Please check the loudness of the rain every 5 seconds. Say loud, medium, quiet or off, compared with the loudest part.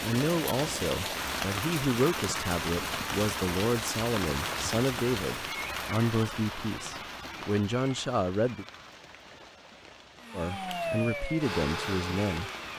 loud, medium, quiet.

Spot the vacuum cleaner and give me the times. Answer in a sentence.
You can hear the vacuum cleaner from 10.2 to 12.7 s.